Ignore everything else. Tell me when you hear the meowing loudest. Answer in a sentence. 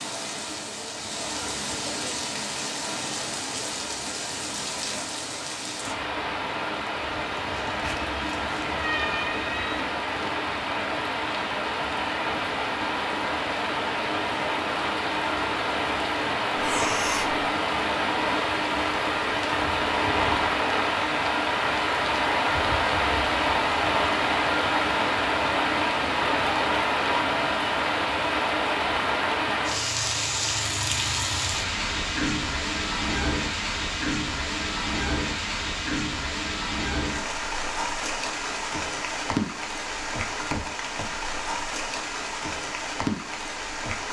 The volume of the meowing peaks at 9 seconds.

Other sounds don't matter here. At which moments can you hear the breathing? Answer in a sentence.
The breathing can be heard from 16.6 to 17.4 s.